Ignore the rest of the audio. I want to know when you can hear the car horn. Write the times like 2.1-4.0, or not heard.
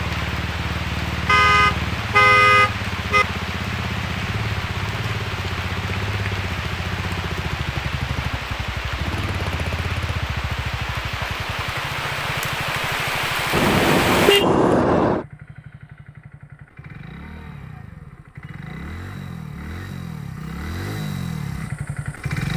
1.2-3.2, 13.5-15.2.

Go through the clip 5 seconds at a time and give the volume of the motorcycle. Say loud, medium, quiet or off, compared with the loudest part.
loud, loud, medium, medium, loud.